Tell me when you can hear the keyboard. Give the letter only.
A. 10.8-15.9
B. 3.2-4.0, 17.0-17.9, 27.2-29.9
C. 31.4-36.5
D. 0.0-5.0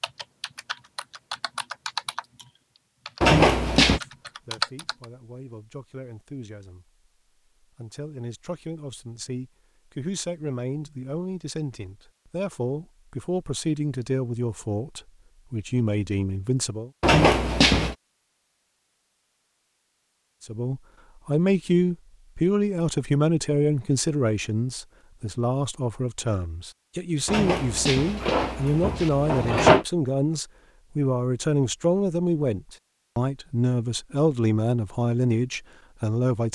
D.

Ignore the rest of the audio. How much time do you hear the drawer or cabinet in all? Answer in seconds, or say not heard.
4 s.